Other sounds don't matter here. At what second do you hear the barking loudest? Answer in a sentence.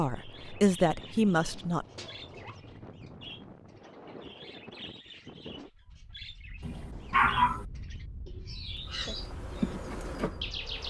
The loudest moment of the barking is at 7 seconds.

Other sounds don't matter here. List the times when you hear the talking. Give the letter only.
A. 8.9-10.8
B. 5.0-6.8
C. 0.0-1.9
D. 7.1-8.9
C.